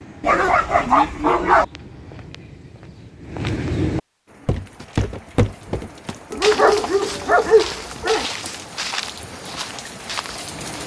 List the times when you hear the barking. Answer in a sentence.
The barking can be heard from 0.2 to 1.6 s and from 6.3 to 8.2 s.